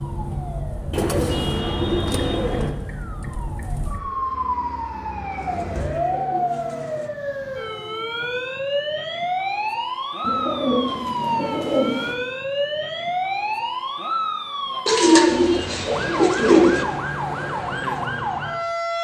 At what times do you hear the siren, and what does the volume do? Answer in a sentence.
You can hear the siren from 0.0 to 18.9 s, getting louder.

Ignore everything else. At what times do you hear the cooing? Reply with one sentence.
You can hear the cooing from 0.9 to 2.8 s, from 5.3 to 7.1 s, from 10.2 to 12.2 s and from 14.8 to 16.9 s.